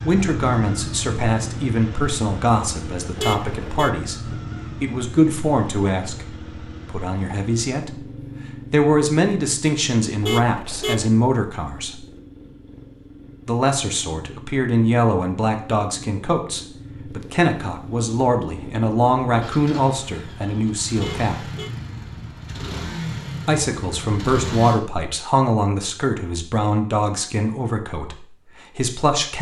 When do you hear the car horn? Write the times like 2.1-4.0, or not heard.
3.1-4.0, 10.2-11.1, 20.9-21.7.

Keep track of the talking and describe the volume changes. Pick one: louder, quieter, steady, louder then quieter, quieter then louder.
steady.